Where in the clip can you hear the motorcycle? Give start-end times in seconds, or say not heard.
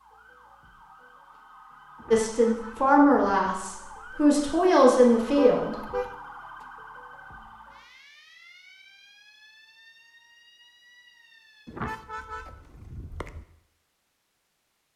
not heard.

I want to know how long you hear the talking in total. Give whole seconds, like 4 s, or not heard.
4 s.